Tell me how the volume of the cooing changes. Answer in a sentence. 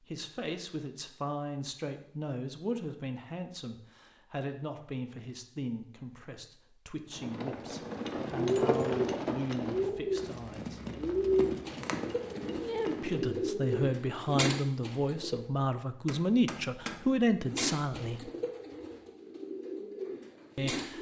The volume of the cooing goes down.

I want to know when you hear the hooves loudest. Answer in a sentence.
The volume of the hooves peaks at 9 seconds.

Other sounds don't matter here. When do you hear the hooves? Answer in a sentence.
The hooves can be heard from 7.1 to 13.4 s.